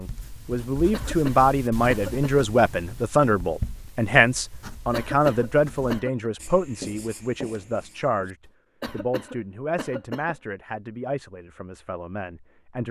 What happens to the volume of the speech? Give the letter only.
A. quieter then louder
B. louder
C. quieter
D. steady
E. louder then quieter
C.